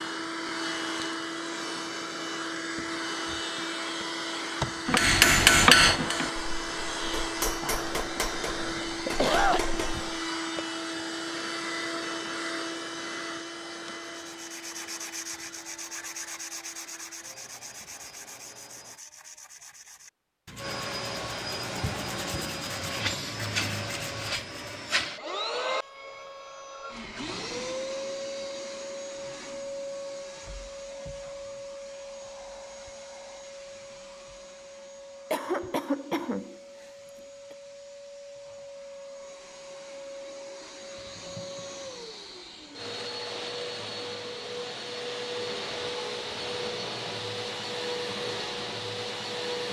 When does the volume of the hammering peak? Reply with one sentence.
The volume of the hammering peaks at 6 seconds.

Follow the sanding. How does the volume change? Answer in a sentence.
The volume of the sanding goes down, then up.